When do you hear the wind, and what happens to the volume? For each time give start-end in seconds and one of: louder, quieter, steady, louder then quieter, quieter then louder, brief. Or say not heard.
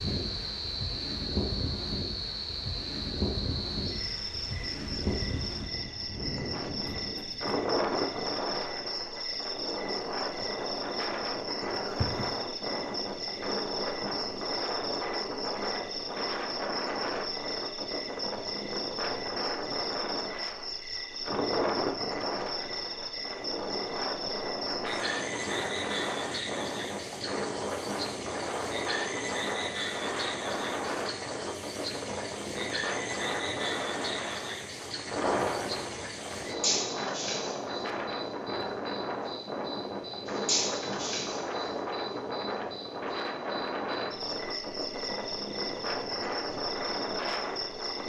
0.0-48.0 steady.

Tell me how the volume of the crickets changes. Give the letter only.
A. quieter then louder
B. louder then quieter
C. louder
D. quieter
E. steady
E.